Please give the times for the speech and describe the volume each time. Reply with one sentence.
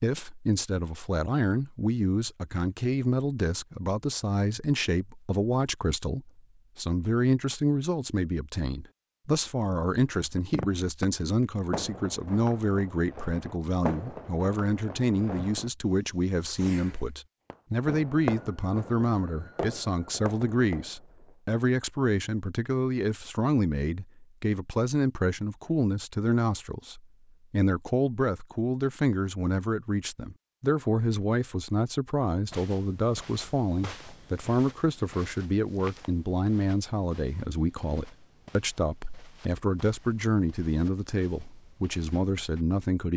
The speech can be heard from 0.0 to 43.1 s, at a steady volume.